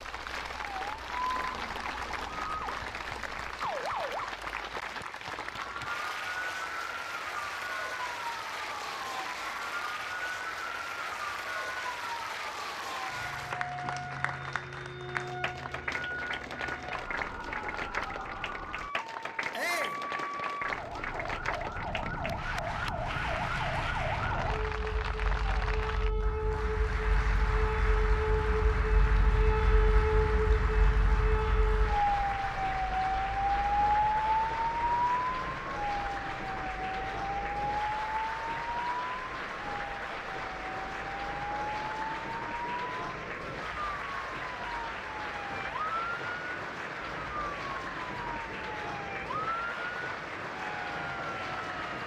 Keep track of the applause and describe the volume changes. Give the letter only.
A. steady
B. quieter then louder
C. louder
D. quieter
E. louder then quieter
A.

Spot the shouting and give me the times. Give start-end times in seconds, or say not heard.
19.5-20.0.